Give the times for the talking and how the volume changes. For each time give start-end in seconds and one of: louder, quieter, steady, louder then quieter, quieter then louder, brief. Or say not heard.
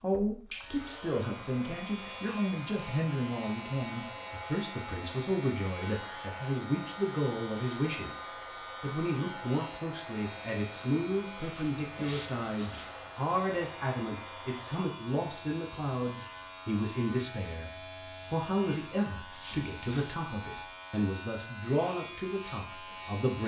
0.0-23.4 steady.